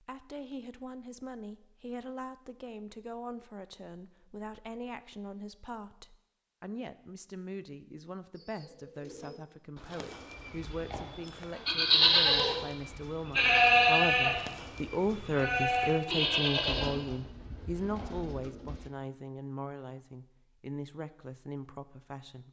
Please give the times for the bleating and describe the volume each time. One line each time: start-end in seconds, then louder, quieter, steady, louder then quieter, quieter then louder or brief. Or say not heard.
10.6-18.1 quieter.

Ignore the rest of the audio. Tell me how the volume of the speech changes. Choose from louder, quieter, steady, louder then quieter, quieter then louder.
louder then quieter.